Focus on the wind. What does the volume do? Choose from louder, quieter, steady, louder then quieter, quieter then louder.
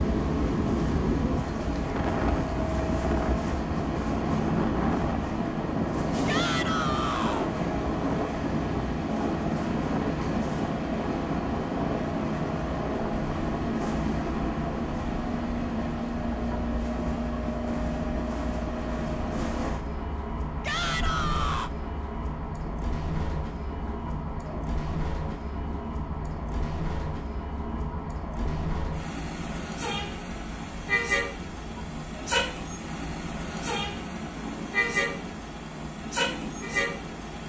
quieter.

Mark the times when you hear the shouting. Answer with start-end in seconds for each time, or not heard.
6.2-7.5, 20.6-21.7.